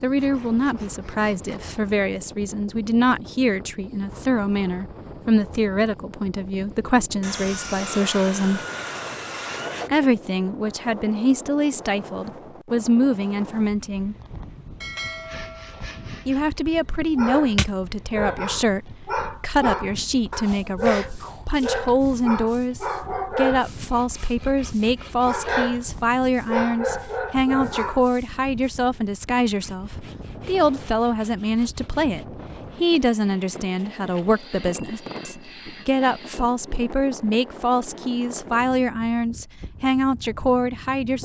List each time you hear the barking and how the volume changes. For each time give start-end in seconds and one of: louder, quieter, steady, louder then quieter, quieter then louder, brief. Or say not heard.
17.1-28.2 steady.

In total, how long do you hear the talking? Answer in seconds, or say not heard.
38 s.